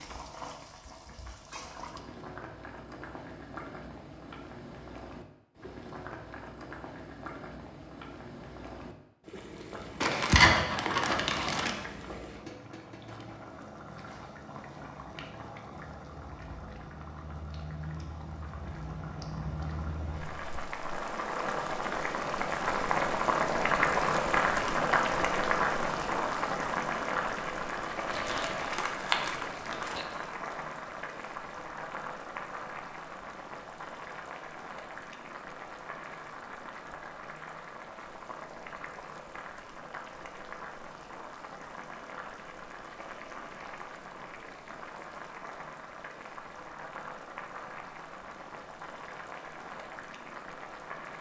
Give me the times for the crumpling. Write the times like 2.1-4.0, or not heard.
10.0-11.8, 28.1-30.1.